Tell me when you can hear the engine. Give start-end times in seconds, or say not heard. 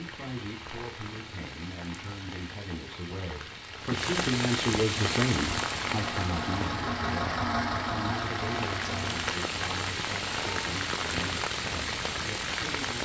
4.9-9.3.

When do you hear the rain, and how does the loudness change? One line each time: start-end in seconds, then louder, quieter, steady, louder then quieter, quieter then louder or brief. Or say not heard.
0.0-13.0 louder.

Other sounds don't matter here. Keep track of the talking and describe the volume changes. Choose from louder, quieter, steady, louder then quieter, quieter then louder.
louder then quieter.